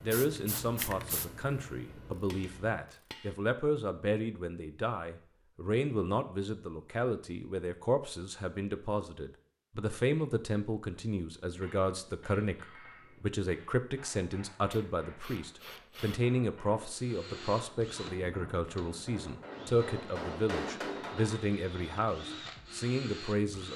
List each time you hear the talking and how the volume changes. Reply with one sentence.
You can hear the talking from 0.0 to 23.7 s, at a steady volume.